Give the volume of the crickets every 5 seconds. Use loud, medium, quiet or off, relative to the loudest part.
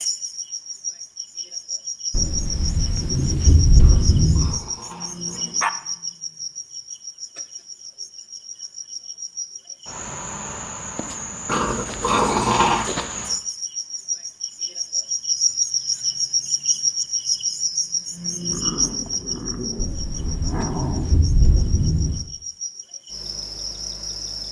medium, medium, medium, loud, medium.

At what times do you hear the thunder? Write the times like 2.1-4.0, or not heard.
2.1-4.6, 19.8-22.2.